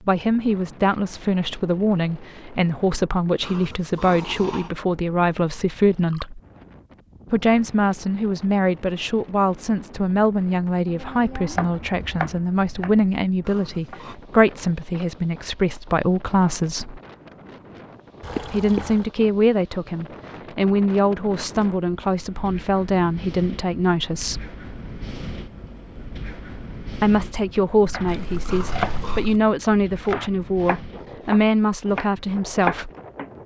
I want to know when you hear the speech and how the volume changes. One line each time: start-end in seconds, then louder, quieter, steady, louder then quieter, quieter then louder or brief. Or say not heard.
0.1-6.4 steady
7.3-17.0 steady
18.5-24.4 steady
26.9-32.9 steady.